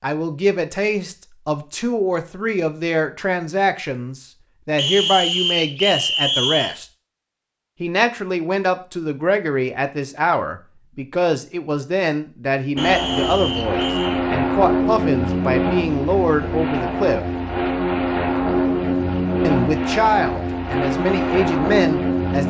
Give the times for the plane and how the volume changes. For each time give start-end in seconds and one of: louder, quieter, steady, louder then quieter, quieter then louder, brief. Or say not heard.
12.8-22.4 steady.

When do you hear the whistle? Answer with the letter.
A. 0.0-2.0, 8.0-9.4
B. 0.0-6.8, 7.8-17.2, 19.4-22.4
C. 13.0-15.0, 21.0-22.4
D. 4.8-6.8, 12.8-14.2
D.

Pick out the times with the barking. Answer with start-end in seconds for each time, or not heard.
not heard.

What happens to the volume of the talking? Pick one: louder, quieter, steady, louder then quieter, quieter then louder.
steady.